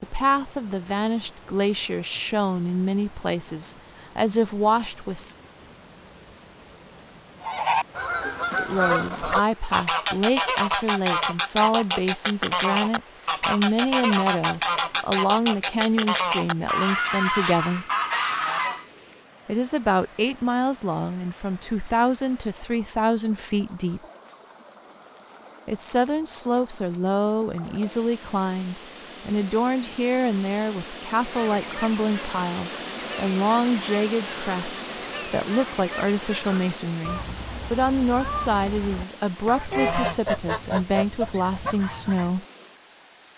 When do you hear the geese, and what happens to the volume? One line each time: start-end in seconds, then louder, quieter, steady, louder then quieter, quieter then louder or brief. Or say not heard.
7.4-18.9 steady
31.1-42.3 louder.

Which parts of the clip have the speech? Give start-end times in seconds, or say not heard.
0.0-5.3, 8.6-17.9, 19.4-24.0, 25.6-42.5.